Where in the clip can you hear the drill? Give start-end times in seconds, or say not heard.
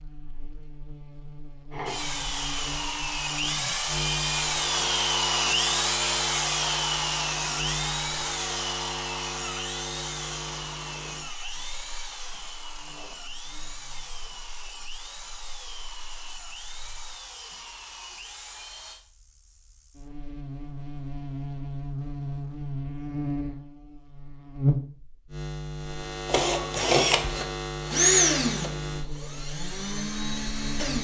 1.7-19.0, 26.2-30.9.